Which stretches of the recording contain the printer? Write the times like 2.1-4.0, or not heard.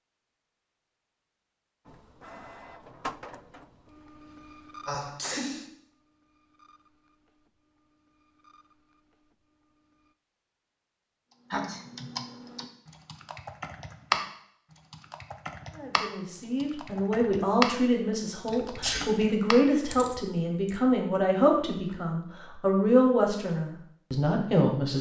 1.9-10.2.